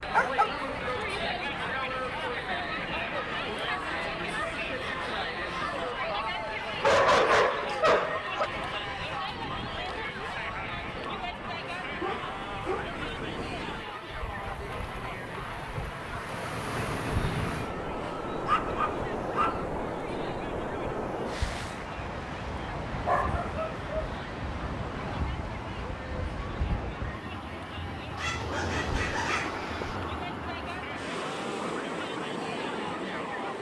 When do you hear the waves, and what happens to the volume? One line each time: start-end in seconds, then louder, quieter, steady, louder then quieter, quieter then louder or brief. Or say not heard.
0.0-33.5 louder.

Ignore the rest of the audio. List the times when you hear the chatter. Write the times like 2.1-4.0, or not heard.
0.0-33.5.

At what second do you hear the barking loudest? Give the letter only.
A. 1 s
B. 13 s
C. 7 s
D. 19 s
C.